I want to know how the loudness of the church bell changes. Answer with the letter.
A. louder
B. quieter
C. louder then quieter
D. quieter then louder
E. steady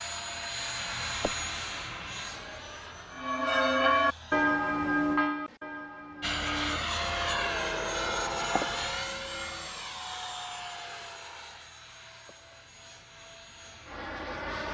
B.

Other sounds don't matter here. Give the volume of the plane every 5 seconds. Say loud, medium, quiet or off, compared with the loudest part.
medium, loud, medium.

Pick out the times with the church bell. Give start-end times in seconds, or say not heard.
3.1-9.8.